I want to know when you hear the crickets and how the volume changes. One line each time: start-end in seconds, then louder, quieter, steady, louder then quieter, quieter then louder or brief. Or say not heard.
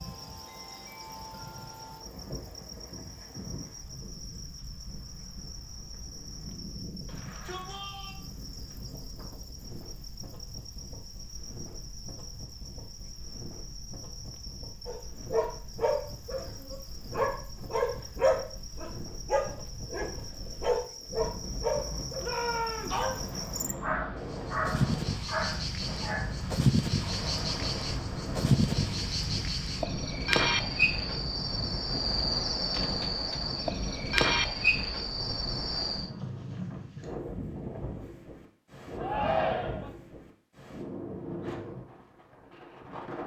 0.0-36.1 louder.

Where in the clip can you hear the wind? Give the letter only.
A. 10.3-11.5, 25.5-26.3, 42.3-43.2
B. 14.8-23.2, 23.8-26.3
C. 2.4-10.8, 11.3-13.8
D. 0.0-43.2
D.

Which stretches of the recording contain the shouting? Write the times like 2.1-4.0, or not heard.
7.0-8.2, 22.2-23.0, 39.0-39.9.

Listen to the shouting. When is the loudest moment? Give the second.
39 s.